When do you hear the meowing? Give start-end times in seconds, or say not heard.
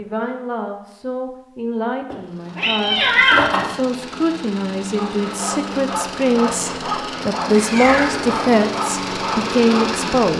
2.1-3.7, 7.5-8.6.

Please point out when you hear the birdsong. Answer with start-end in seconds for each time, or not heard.
not heard.